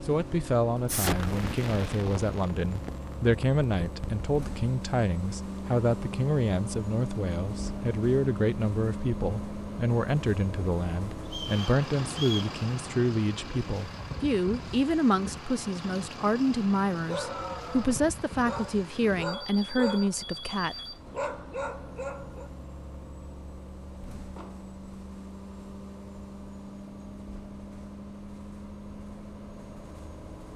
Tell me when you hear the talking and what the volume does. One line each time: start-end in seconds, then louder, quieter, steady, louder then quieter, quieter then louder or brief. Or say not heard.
0.1-20.8 steady.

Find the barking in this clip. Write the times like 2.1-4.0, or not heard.
16.9-22.5.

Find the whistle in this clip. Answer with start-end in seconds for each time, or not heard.
11.2-12.6.